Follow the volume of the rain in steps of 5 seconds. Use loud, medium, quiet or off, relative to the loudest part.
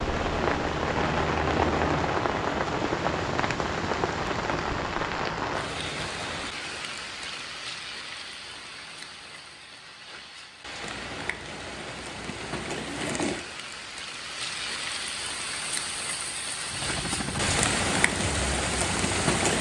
loud, medium, medium, loud.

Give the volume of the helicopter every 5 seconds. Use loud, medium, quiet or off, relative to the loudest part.
loud, off, off, loud.